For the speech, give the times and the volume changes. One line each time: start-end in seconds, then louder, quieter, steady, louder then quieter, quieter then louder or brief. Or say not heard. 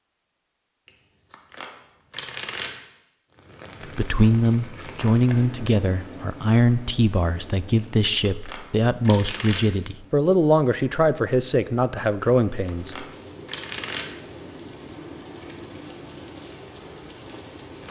4.0-13.1 steady.